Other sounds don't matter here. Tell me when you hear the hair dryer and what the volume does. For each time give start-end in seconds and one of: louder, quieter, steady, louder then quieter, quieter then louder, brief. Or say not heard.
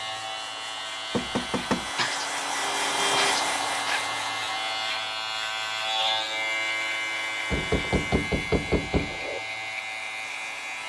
0.0-10.8 louder then quieter.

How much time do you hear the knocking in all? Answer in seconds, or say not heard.
3 s.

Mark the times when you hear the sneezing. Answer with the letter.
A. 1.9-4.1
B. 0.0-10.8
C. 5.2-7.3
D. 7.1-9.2
A.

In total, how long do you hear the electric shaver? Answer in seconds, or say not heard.
11 s.